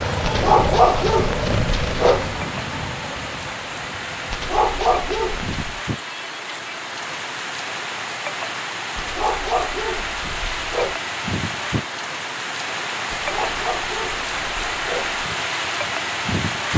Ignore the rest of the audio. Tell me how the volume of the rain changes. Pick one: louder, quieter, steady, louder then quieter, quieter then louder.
louder.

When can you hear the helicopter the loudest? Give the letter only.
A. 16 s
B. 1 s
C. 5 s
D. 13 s
B.